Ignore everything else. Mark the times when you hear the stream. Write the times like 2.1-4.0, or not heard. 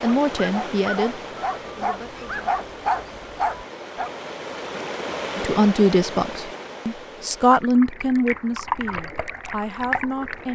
0.0-10.5.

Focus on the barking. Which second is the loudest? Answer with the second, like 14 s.
3 s.